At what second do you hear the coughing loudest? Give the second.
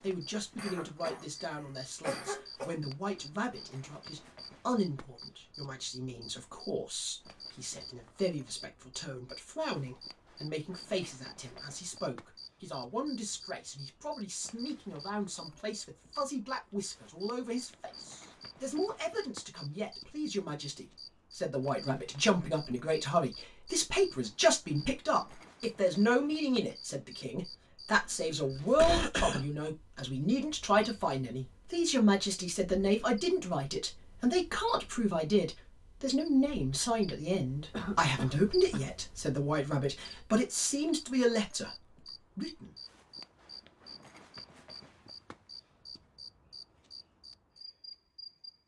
29 s.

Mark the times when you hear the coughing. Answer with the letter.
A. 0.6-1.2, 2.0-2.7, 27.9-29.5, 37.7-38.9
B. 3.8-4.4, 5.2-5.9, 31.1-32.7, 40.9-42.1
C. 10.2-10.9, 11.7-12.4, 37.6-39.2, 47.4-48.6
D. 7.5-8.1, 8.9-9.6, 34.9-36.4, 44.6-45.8
A.